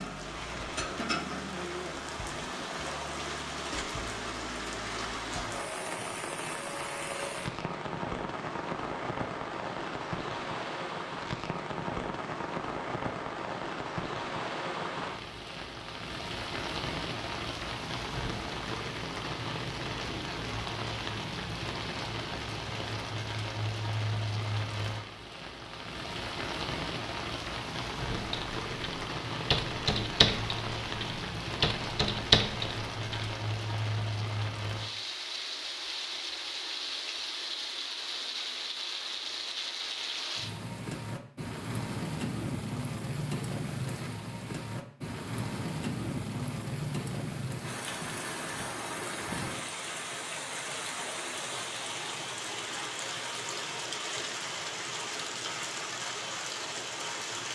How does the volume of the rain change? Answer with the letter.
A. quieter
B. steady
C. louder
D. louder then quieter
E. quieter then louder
B.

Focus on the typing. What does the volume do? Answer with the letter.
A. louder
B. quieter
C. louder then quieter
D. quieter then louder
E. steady
D.